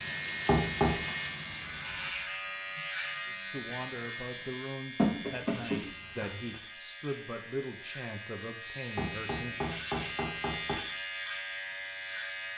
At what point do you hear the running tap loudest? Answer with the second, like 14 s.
1 s.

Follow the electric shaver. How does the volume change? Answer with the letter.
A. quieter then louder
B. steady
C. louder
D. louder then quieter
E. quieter
A.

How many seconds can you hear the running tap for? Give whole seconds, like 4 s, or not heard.
5 s.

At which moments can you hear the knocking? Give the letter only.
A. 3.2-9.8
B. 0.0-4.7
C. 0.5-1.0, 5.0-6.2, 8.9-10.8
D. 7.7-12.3
C.